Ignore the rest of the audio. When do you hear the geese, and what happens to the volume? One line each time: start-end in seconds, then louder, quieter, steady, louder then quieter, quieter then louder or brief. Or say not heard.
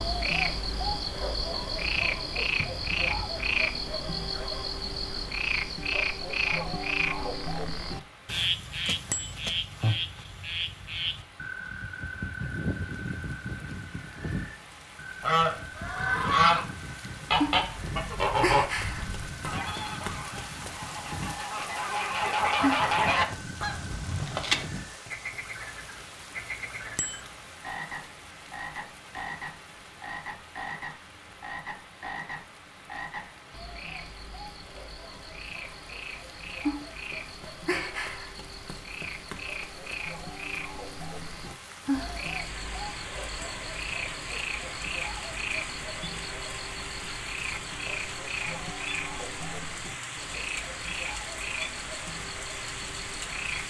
15.2-16.6 brief
17.3-24.6 quieter then louder.